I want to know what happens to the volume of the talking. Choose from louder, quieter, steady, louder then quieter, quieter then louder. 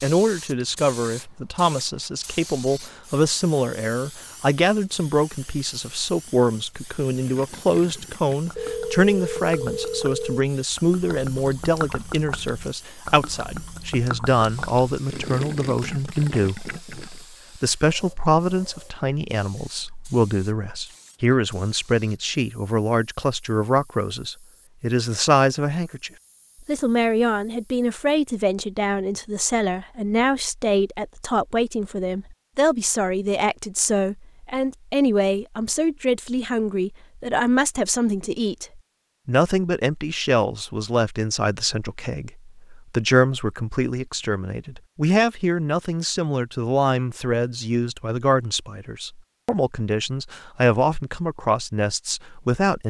steady.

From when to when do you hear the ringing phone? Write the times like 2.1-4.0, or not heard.
8.6-10.4.